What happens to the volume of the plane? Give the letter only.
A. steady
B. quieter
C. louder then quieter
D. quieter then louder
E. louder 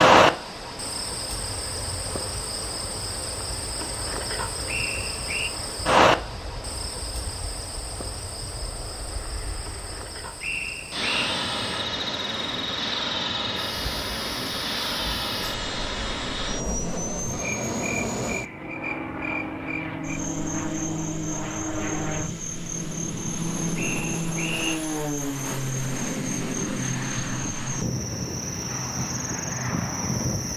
E.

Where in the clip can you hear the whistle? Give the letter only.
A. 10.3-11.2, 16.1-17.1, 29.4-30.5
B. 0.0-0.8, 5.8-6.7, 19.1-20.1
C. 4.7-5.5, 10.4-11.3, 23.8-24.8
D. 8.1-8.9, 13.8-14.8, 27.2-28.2
C.